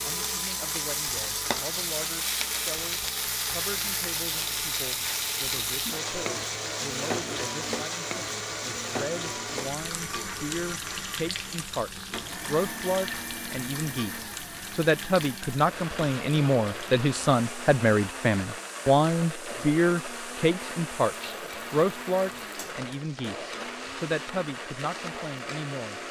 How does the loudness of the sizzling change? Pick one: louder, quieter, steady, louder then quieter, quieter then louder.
quieter.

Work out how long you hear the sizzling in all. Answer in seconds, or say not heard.
26 s.